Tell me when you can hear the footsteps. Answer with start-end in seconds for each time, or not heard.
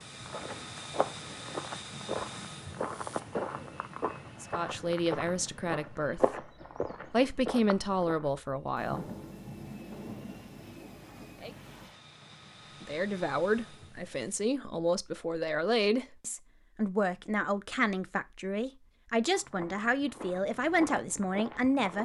0.2-8.2, 19.2-22.0.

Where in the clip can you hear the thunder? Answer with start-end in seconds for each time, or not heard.
8.8-11.9.